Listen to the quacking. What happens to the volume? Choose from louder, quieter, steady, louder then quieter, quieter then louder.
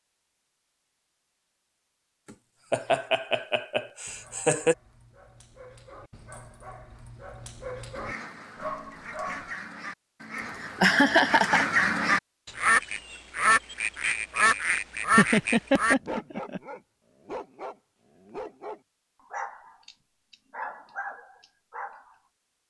louder.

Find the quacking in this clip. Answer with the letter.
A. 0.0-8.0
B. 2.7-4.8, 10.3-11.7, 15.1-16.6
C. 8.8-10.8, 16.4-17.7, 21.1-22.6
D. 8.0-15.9
D.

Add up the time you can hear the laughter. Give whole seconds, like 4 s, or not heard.
5 s.